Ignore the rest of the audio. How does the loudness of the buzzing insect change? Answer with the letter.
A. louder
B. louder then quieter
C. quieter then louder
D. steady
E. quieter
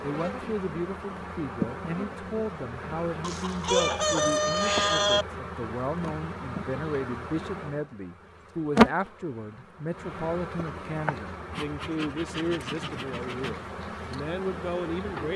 B.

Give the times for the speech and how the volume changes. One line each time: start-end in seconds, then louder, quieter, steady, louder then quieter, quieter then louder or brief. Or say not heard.
0.0-15.3 steady.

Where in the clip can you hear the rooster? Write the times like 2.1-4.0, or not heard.
3.2-5.2.